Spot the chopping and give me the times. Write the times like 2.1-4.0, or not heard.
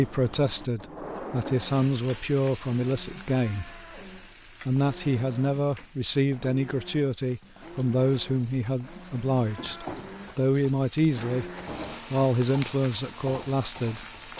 not heard.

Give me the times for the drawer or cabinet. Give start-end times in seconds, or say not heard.
0.8-2.2, 9.6-10.3.